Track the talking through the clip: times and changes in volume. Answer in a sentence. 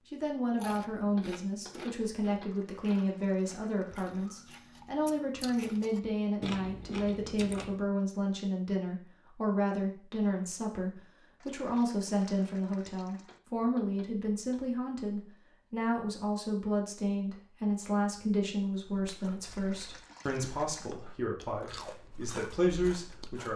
The talking can be heard from 0.1 to 23.5 s, at a steady volume.